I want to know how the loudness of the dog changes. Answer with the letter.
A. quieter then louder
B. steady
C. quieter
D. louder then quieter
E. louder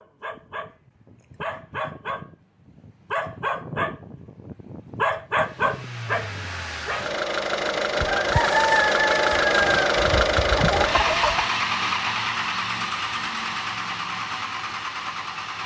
E.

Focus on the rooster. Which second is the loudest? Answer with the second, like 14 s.
9 s.